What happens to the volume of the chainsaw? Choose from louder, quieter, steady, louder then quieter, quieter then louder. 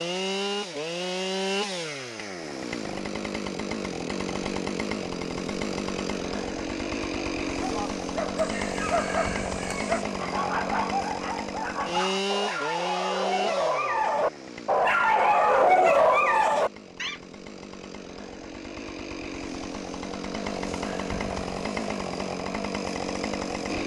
quieter then louder.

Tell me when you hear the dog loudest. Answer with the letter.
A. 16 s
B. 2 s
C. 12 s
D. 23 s
A.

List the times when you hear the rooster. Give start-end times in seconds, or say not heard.
8.3-10.1.